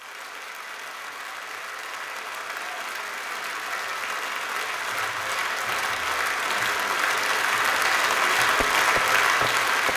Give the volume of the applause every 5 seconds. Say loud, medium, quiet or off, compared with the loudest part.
medium, loud.